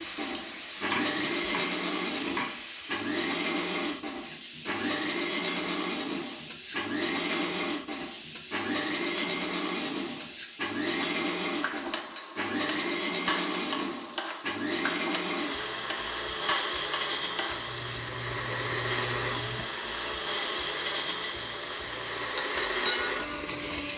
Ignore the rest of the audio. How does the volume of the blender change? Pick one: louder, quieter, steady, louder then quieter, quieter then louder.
steady.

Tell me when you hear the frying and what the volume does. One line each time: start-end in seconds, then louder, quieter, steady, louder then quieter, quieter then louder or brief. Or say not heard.
0.0-23.9 steady.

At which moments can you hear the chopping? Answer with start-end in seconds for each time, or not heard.
0.7-2.6.